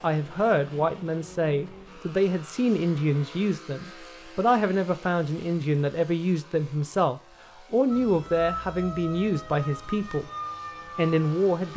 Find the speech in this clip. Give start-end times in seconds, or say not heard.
0.0-10.3, 10.9-11.7.